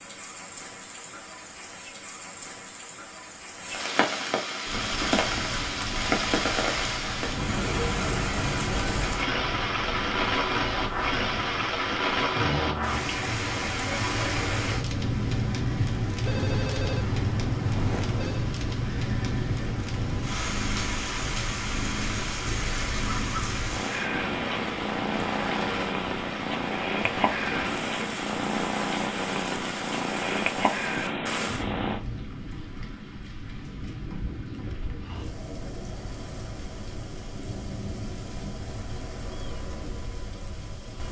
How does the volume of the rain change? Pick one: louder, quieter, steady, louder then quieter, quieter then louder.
quieter.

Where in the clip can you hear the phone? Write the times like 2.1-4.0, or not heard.
16.2-18.5.